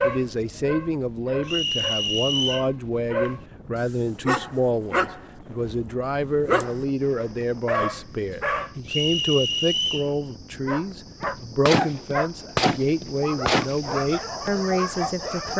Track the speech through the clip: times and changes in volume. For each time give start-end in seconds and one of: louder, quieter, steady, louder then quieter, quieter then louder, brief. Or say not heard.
0.0-15.5 steady.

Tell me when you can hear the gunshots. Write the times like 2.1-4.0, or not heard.
11.2-13.9.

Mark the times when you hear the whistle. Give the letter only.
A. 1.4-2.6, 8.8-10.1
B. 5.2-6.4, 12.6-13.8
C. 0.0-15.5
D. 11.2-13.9
A.